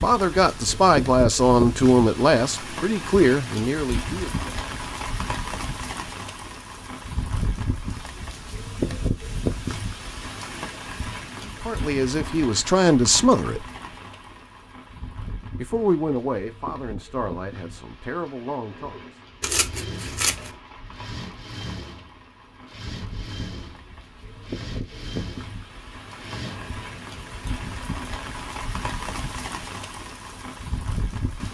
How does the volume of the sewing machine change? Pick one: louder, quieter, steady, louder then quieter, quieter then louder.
steady.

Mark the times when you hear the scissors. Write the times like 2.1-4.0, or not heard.
19.4-20.6.